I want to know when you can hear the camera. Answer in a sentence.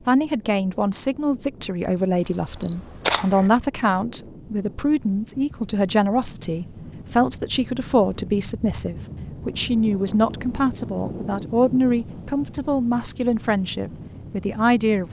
The camera can be heard from 2.2 to 3.5 s.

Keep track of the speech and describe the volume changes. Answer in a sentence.
The loudness of the speech stays about the same.